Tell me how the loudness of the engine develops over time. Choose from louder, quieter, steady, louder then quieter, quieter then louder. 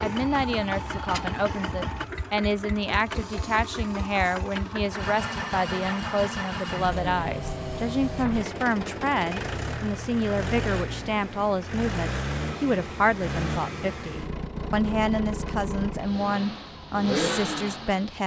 steady.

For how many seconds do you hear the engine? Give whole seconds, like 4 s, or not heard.
18 s.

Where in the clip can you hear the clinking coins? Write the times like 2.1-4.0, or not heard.
not heard.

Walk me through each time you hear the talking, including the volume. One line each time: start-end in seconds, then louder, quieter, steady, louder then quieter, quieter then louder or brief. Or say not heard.
0.0-18.2 steady.